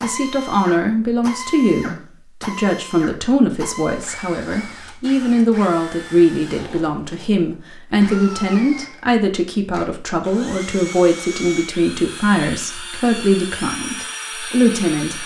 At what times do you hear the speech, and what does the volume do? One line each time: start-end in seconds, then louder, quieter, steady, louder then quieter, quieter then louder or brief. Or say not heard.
0.0-15.2 steady.